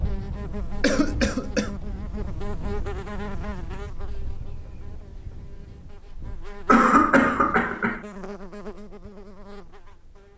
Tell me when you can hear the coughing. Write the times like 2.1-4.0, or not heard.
0.8-1.7, 6.7-8.0.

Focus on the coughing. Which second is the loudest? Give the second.
7 s.